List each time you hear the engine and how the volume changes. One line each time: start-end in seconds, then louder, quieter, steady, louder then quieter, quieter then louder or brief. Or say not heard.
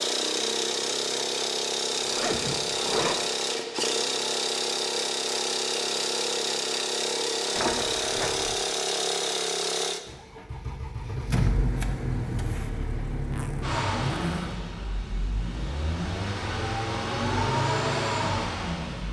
0.0-19.0 steady.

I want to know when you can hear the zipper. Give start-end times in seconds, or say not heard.
2.0-3.1, 7.5-8.6, 13.3-14.6.